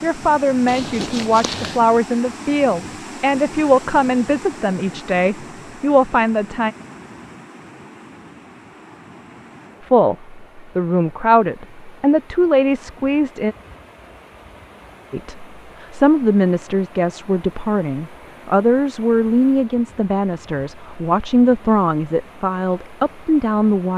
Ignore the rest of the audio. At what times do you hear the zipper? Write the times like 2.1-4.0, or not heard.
0.7-1.8.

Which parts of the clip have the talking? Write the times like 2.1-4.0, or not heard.
0.0-6.7, 9.8-13.6, 15.1-23.9.